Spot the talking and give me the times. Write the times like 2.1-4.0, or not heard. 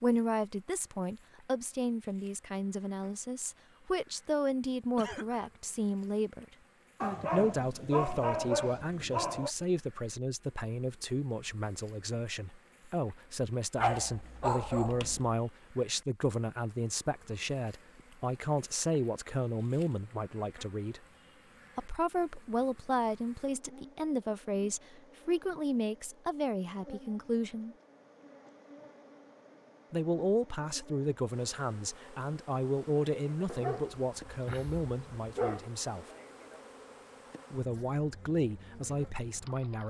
0.0-6.5, 7.3-21.0, 21.8-27.8, 29.9-36.0, 37.5-39.8.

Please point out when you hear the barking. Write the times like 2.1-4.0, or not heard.
7.0-9.5, 13.8-15.3, 33.5-35.7.